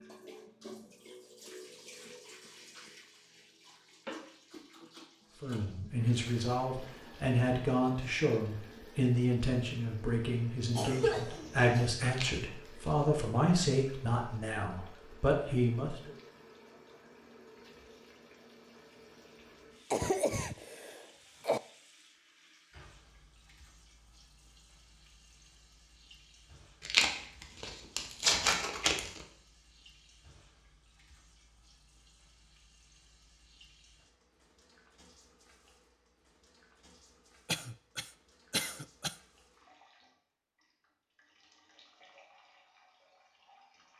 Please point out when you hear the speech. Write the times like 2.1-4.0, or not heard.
5.4-16.1.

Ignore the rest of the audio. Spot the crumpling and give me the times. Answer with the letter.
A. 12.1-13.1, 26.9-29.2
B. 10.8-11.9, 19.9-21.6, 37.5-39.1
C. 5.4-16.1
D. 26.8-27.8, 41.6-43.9
A.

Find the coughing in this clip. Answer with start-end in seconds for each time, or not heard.
10.8-11.9, 19.9-21.6, 37.5-39.1.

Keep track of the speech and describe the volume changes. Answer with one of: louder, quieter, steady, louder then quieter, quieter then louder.
steady.